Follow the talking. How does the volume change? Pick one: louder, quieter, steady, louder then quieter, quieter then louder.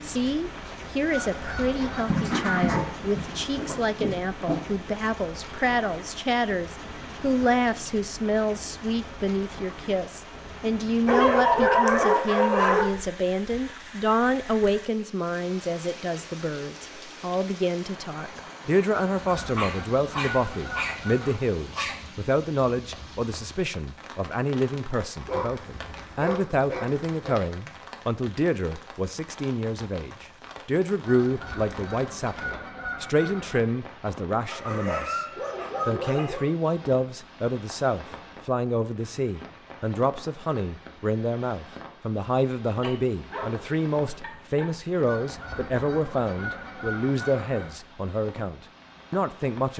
steady.